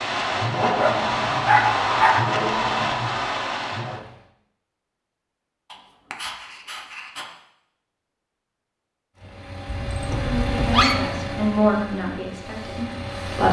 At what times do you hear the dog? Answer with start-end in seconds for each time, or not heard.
0.6-2.2, 5.7-7.2, 9.7-10.9.